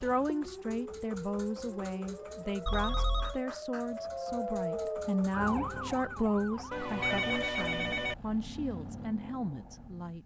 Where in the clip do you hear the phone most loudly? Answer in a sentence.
The loudest moment of the phone is at 7 seconds.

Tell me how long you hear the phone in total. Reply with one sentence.
The phone can be heard for 2 seconds in total.